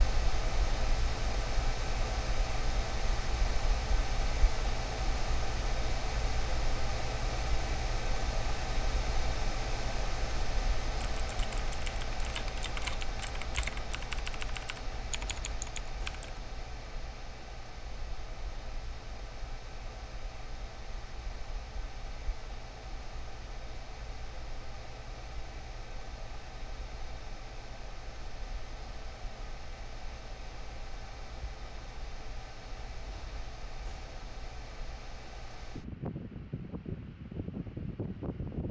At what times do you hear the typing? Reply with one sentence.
You can hear the typing from 11.2 to 16.4 s.